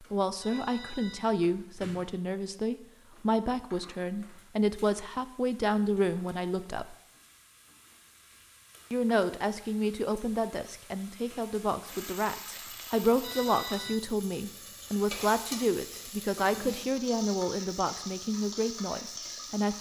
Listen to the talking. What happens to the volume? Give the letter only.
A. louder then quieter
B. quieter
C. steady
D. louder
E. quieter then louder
C.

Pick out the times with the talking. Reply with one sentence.
The talking can be heard from 0.0 to 7.0 s and from 8.9 to 19.7 s.